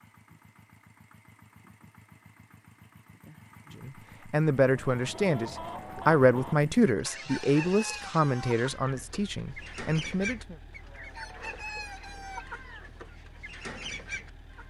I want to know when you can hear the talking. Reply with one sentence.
The talking can be heard from 3.8 to 10.6 s.